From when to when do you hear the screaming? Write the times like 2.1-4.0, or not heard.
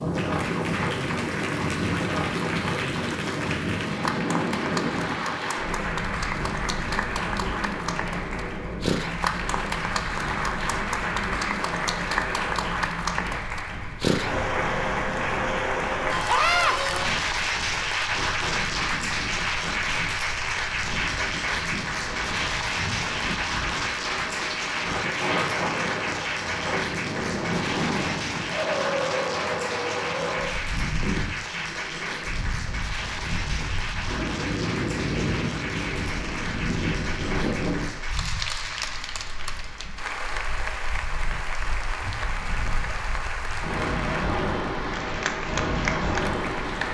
16.2-16.8.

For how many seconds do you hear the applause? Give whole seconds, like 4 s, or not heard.
47 s.